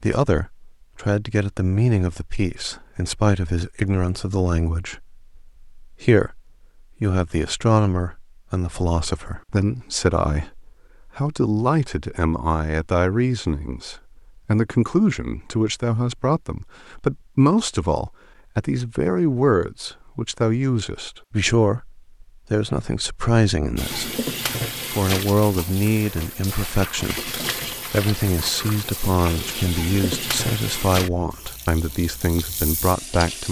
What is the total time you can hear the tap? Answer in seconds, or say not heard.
10 s.